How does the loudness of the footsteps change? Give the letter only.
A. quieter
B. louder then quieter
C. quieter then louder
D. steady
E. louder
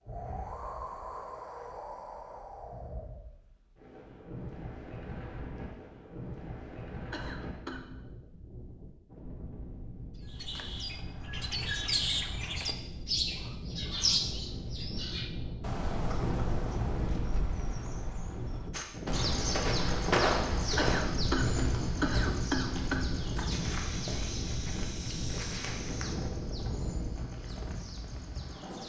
A.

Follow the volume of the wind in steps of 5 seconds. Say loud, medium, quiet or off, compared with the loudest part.
medium, medium, medium, loud, loud, loud.